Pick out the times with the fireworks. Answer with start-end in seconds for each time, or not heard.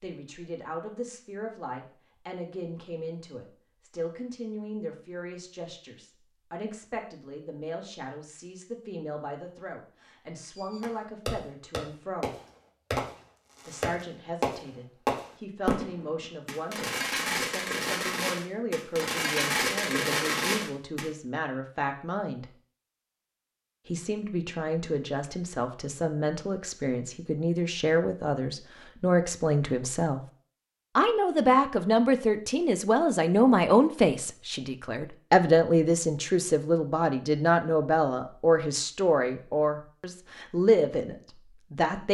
10.4-21.1.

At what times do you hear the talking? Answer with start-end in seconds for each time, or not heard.
0.0-12.3, 13.7-22.4, 23.9-30.2, 30.9-42.1.